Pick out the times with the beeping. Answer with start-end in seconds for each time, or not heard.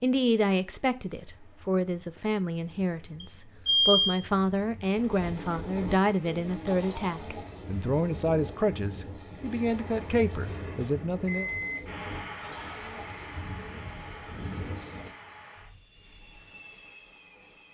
3.2-4.2, 11.2-11.8.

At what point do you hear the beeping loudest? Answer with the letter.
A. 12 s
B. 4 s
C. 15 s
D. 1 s
B.